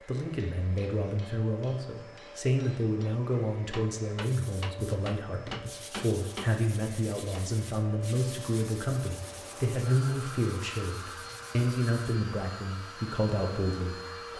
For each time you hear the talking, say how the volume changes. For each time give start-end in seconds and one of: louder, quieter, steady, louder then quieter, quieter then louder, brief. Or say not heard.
0.1-14.3 steady.